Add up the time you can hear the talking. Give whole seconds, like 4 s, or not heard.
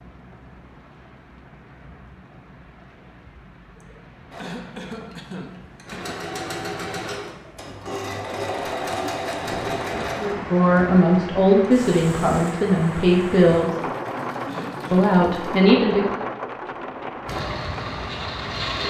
5 s.